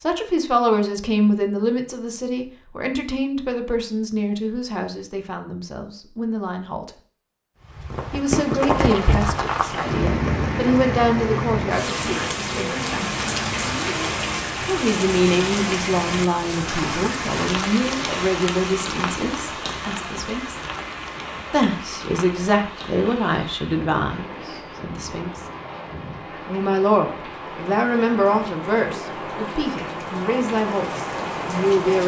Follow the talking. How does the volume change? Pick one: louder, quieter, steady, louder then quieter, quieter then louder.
steady.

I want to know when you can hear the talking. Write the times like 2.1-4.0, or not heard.
0.0-6.9, 8.1-13.1, 14.7-20.6, 21.5-25.4, 26.4-32.0.